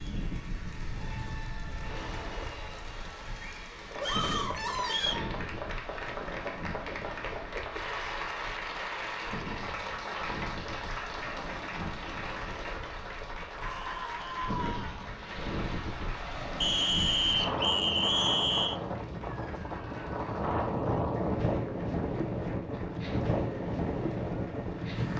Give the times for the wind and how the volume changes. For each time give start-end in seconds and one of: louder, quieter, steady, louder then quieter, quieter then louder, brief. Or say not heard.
0.0-25.1 louder.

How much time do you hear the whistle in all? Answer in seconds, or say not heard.
3 s.